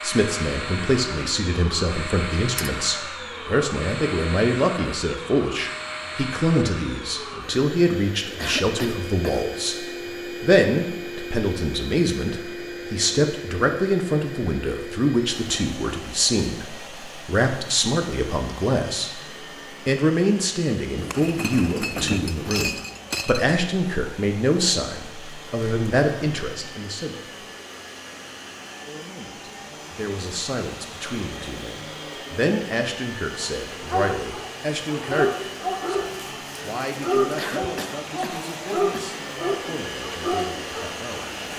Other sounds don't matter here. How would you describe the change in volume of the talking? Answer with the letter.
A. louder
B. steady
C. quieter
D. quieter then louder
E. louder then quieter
C.